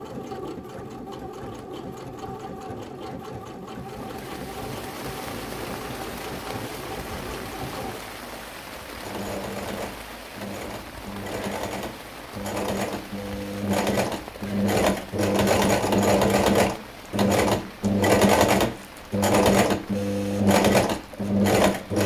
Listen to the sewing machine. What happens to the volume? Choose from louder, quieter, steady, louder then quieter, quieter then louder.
louder.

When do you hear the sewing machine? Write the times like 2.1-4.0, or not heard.
0.0-22.0.